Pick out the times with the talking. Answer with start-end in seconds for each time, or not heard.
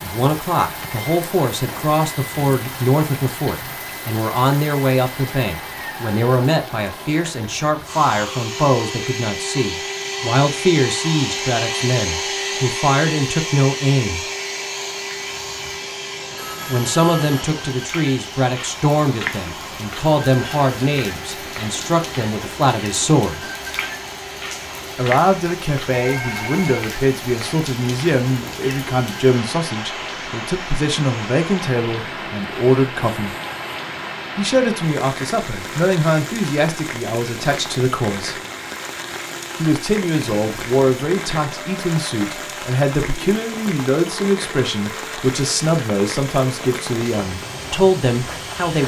0.0-14.2, 16.6-23.4, 24.9-33.4, 34.4-38.4, 39.5-48.8.